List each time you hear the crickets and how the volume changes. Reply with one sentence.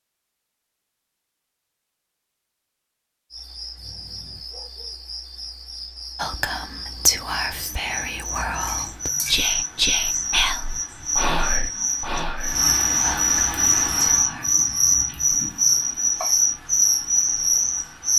The crickets can be heard from 3.3 to 18.1 s, getting louder.